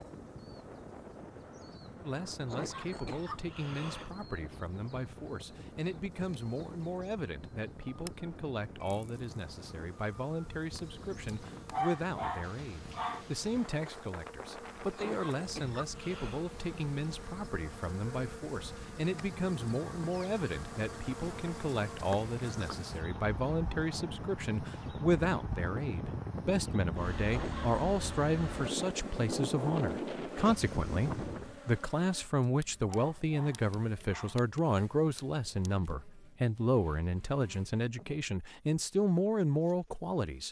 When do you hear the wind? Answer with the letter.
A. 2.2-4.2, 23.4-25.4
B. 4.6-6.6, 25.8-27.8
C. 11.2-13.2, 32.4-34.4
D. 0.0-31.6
D.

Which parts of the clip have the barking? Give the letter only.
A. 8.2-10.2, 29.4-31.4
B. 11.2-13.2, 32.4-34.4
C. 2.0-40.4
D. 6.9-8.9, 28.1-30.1
B.